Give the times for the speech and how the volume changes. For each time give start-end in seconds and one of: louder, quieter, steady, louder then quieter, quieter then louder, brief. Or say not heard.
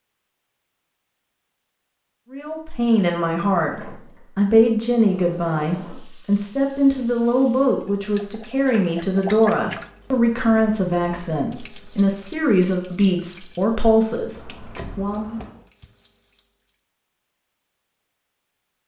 2.3-15.4 steady.